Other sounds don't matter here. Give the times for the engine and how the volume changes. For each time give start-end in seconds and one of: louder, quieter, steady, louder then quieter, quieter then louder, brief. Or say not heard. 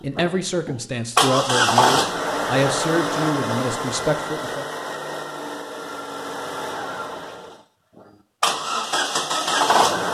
0.1-10.1 quieter then louder.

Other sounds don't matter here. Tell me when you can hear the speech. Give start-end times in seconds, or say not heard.
0.0-4.7.